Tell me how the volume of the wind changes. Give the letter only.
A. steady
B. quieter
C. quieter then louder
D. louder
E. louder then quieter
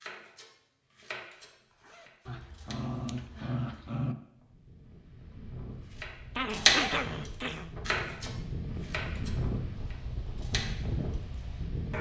D.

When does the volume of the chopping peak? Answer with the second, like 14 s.
7 s.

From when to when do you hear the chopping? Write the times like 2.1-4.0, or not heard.
0.0-2.8, 6.0-11.2.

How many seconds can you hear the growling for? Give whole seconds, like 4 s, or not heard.
3 s.